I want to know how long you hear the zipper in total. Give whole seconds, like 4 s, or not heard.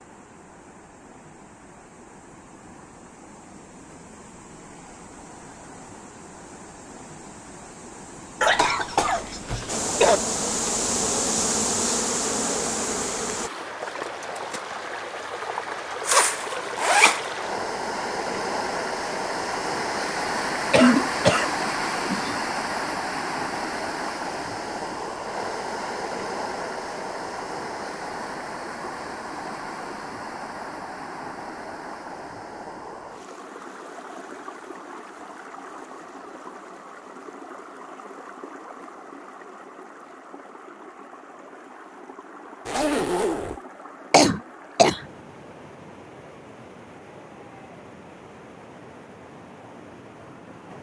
2 s.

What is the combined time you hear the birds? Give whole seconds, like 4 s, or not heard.
not heard.